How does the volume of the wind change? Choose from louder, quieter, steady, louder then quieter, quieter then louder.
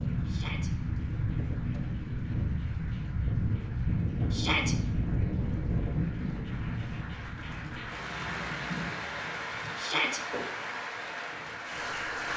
quieter.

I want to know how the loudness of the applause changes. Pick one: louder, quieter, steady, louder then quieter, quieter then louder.
louder.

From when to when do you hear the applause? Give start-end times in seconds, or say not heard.
0.0-12.3.